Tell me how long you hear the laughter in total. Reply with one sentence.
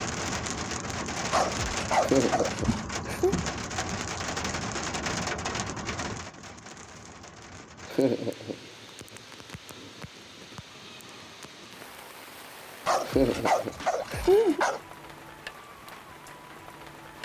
The laughter can be heard for 4 seconds in total.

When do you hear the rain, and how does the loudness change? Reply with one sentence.
The rain can be heard from 0.0 to 17.2 s, getting quieter.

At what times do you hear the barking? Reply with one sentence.
The barking can be heard from 1.3 to 2.8 s and from 12.8 to 14.8 s.